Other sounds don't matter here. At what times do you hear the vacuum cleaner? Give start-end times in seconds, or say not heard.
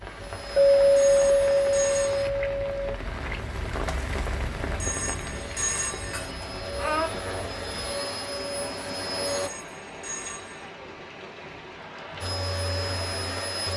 0.0-2.3, 5.3-9.5, 12.2-13.7.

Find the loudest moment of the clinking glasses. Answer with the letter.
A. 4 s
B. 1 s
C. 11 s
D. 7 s
B.